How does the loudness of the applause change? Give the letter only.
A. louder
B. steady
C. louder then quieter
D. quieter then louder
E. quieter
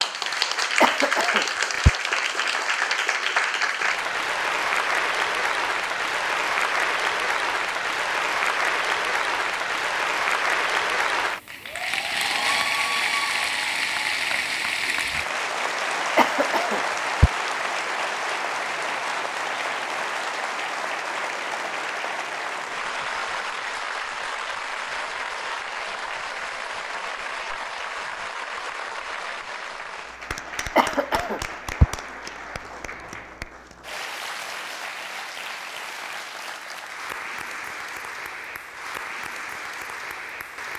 E.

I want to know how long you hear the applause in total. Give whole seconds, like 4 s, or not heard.
41 s.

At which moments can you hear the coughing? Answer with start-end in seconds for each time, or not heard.
0.8-1.9, 16.1-17.3, 30.8-31.9.